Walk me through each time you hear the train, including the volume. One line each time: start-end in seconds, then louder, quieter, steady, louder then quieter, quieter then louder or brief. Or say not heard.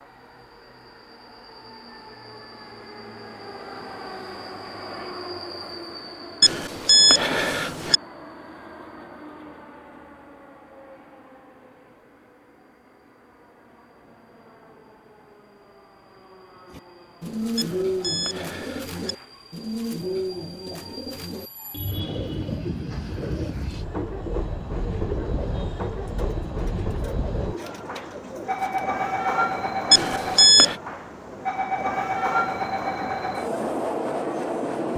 0.0-34.9 quieter then louder.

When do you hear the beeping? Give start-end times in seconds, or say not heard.
6.4-8.0, 17.6-19.1, 29.9-30.8.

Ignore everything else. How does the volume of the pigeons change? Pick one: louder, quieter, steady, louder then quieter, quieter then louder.
quieter.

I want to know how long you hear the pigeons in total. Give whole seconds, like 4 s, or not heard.
12 s.